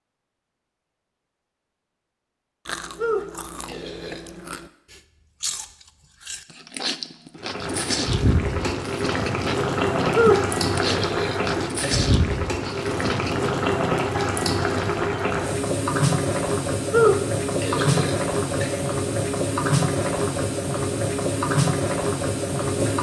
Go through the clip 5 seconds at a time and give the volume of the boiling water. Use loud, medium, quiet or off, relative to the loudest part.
off, loud, loud, loud, loud.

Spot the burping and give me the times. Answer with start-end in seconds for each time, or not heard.
3.0-4.2, 10.1-12.1, 16.9-18.9.